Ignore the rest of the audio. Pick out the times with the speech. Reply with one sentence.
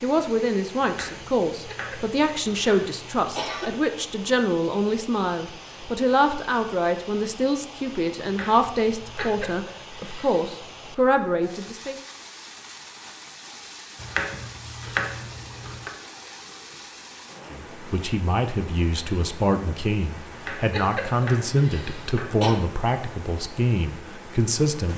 You can hear the speech from 0.0 to 11.9 s and from 17.5 to 24.9 s.